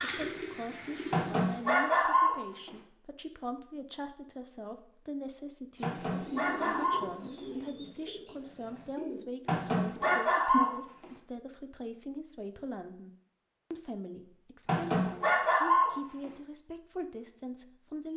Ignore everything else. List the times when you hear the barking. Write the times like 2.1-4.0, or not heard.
1.1-2.7, 5.8-7.4, 9.4-11.1, 14.7-16.3.